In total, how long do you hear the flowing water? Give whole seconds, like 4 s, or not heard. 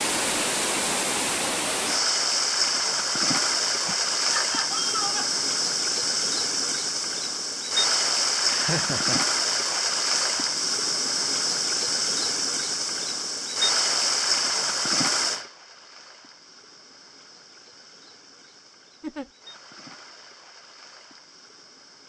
22 s.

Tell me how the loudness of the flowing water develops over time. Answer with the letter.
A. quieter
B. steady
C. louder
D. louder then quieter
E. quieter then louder
A.